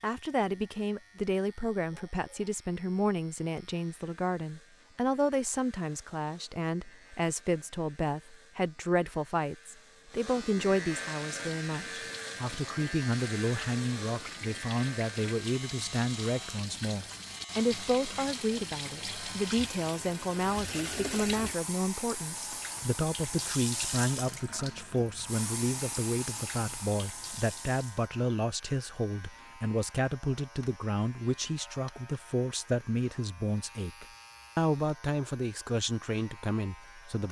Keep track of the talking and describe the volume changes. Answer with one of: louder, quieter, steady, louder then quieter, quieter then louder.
steady.